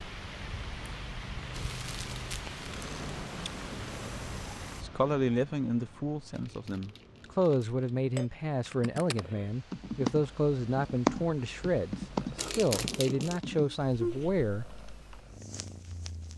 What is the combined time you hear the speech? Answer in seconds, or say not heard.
10 s.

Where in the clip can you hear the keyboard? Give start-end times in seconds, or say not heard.
8.7-15.2.